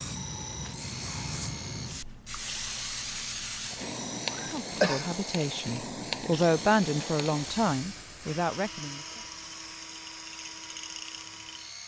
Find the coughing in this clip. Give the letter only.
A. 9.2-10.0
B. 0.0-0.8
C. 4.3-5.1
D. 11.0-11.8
C.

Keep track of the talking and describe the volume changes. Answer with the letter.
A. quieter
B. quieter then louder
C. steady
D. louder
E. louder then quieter
E.